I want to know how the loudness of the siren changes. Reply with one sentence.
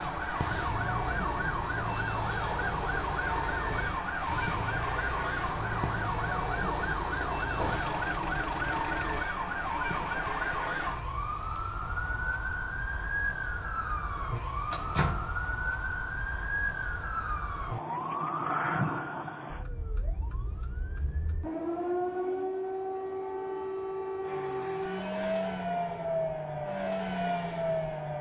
The loudness of the siren stays about the same.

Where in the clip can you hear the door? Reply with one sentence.
You can hear the door from 7.5 to 8.0 s and from 14.7 to 15.3 s.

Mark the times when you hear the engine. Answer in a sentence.
You can hear the engine from 0.1 to 9.3 s and from 24.2 to 28.1 s.